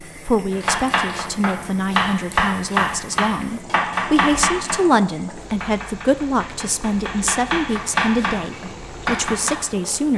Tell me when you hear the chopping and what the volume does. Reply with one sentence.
The chopping can be heard from 0.5 to 9.5 s, getting quieter then louder.